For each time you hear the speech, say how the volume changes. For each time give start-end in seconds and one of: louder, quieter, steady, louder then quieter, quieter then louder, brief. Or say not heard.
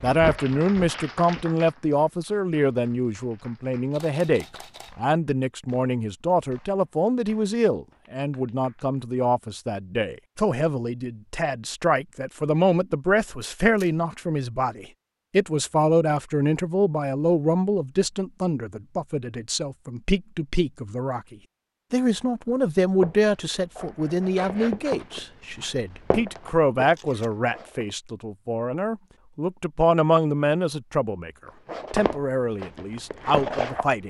0.0-34.0 steady.